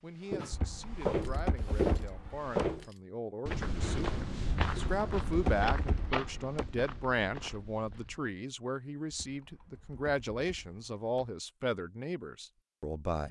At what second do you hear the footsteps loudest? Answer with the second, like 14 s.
2 s.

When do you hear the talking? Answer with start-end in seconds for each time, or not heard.
0.0-13.2.